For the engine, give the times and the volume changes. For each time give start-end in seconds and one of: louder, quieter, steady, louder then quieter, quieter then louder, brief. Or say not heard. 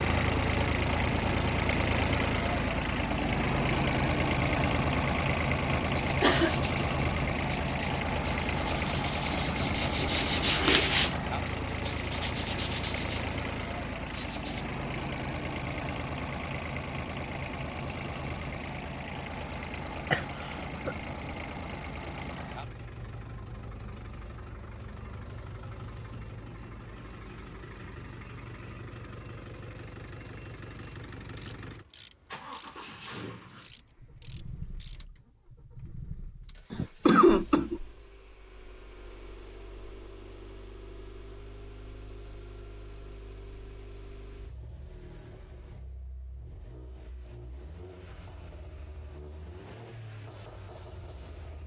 0.0-51.6 quieter.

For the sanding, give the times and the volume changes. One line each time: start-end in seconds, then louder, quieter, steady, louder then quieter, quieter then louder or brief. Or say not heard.
6.0-14.7 louder then quieter.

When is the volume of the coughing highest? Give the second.
37 s.